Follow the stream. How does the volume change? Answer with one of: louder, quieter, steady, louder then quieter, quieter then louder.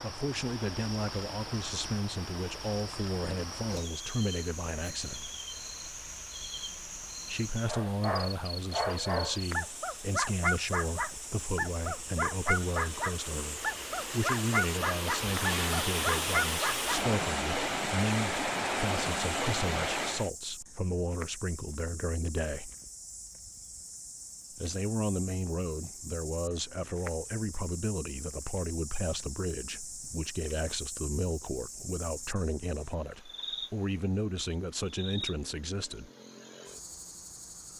louder.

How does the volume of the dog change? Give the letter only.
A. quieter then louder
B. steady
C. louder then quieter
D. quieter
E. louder
B.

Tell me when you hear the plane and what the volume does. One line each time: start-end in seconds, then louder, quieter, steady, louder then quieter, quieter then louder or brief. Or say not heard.
not heard.